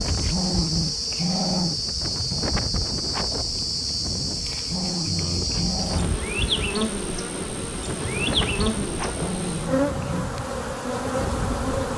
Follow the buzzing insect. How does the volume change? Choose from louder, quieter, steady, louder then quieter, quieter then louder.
steady.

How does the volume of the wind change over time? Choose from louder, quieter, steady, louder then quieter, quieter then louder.
steady.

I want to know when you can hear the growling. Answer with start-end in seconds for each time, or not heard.
0.1-1.8, 4.5-6.2, 9.1-10.3.